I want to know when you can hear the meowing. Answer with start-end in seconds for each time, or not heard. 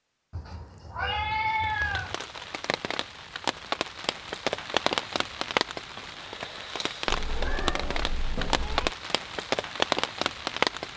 0.3-2.1, 7.0-8.9.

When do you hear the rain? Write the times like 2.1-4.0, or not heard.
1.6-10.9.